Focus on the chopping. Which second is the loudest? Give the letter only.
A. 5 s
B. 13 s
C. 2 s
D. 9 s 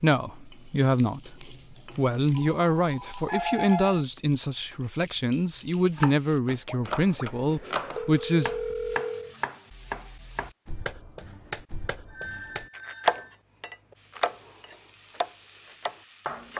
B.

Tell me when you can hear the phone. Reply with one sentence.
The phone can be heard from 2.4 to 4.0 s, from 6.7 to 9.3 s and from 12.1 to 13.4 s.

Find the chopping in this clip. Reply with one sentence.
You can hear the chopping from 5.9 to 16.5 s.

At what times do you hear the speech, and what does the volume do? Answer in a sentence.
The speech can be heard from 0.0 to 8.5 s, at a steady volume.